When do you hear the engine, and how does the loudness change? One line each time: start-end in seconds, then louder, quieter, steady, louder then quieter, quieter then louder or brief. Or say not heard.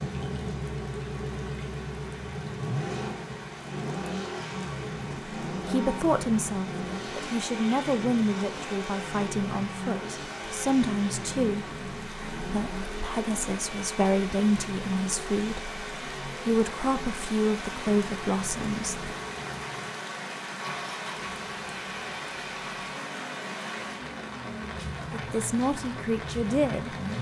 0.0-27.1 quieter.